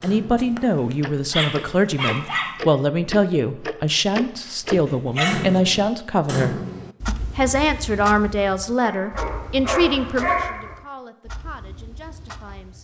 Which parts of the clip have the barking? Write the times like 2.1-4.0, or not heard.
0.3-2.5, 4.5-5.6, 8.8-10.8.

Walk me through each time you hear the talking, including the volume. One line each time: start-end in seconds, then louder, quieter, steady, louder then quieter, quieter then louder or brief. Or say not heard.
0.0-12.8 quieter.